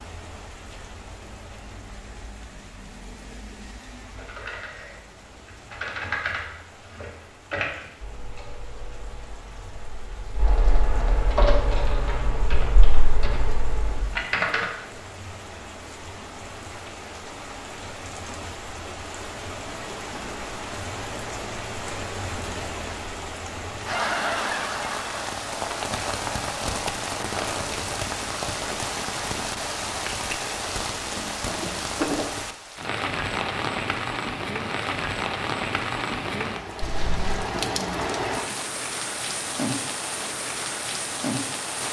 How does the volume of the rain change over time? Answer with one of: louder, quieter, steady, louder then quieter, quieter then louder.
louder.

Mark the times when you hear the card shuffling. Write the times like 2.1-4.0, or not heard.
36.8-37.5.